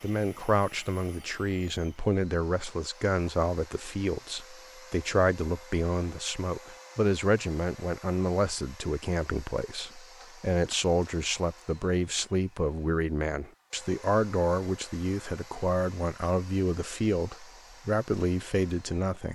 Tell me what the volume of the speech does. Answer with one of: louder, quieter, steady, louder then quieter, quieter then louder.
steady.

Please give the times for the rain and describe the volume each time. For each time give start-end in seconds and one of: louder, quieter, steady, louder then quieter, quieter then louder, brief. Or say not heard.
not heard.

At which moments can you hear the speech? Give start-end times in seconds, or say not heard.
0.0-19.3.